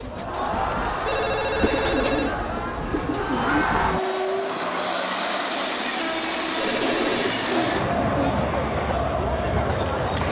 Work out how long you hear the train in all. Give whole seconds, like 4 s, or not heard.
10 s.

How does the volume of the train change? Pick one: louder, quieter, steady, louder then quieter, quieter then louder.
louder.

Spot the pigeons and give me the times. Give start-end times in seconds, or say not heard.
1.6-3.6, 6.7-8.5.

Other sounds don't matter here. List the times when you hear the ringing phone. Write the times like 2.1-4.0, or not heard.
1.1-2.4, 6.5-7.2.